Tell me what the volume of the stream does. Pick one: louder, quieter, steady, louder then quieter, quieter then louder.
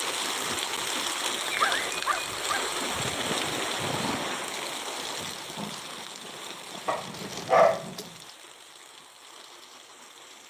quieter.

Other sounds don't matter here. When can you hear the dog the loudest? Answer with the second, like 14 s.
8 s.